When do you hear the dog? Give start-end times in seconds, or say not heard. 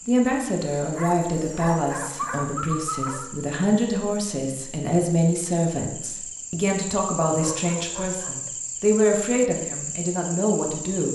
0.9-3.2, 7.2-8.4.